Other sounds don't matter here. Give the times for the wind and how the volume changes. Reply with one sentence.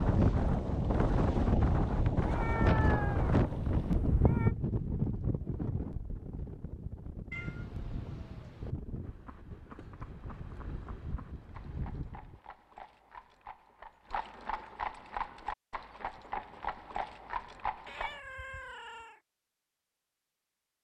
You can hear the wind from 0.0 to 12.4 s, getting quieter.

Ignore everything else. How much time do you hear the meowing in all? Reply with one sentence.
You can hear the meowing for 5 seconds altogether.